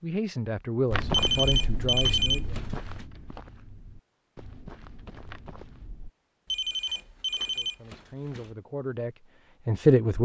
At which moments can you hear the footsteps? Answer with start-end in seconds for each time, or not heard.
0.9-6.1.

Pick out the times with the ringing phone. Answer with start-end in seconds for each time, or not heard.
1.1-3.0, 6.5-8.6.